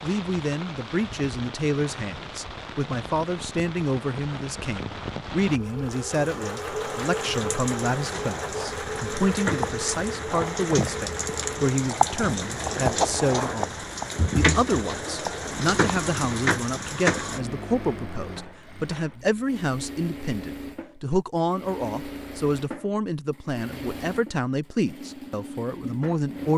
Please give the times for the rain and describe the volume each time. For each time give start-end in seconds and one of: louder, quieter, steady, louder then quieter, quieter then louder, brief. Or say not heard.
0.0-17.4 louder.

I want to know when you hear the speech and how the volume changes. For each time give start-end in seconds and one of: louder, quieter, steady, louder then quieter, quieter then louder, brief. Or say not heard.
0.0-26.5 steady.